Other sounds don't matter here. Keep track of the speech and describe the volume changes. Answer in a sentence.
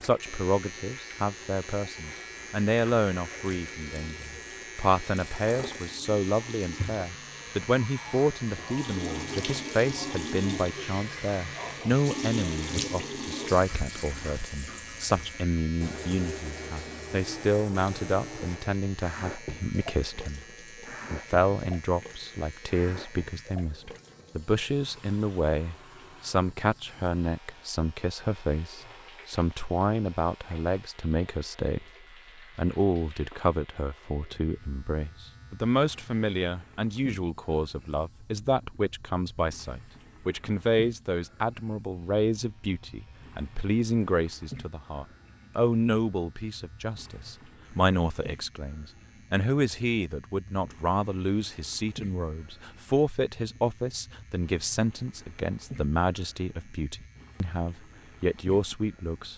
The volume of the speech stays about the same.